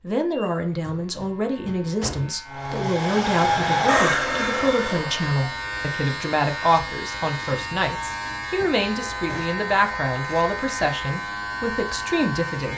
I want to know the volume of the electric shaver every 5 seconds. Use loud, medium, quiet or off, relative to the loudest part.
medium, loud, loud.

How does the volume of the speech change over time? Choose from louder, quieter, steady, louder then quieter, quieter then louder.
steady.